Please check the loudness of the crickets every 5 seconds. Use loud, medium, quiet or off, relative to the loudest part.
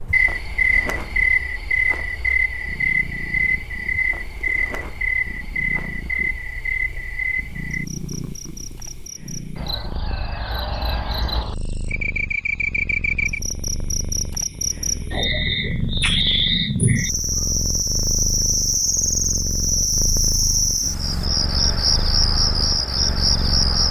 loud, medium, medium, loud, loud.